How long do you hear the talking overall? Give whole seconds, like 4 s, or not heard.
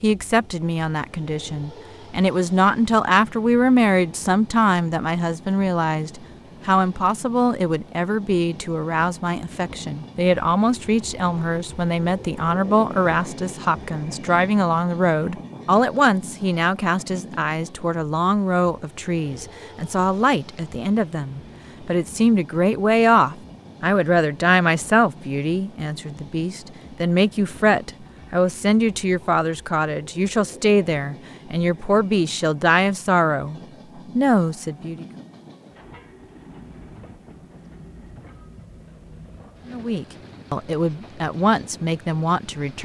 38 s.